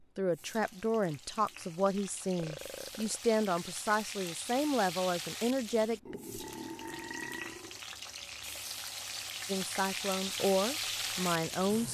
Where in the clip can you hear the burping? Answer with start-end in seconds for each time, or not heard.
2.4-3.2, 6.0-7.8.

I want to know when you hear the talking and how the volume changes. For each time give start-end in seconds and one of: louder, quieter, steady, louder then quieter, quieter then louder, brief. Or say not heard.
0.1-6.2 steady
9.4-11.8 brief.